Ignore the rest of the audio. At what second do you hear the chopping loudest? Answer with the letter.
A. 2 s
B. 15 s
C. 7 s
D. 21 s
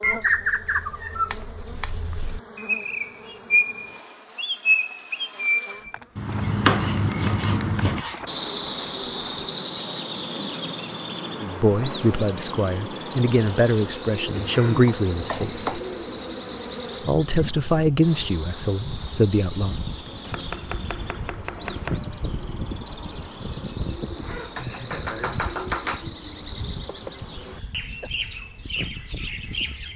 C.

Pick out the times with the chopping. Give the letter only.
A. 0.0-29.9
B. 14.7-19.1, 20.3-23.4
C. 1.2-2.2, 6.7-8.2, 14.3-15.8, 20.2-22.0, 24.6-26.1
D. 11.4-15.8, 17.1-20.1
C.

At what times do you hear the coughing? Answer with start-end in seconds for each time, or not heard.
26.9-28.1.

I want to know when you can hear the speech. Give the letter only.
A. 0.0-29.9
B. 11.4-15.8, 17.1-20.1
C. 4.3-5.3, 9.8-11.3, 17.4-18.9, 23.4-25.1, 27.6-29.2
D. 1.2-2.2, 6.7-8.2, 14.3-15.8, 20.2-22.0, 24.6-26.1
B.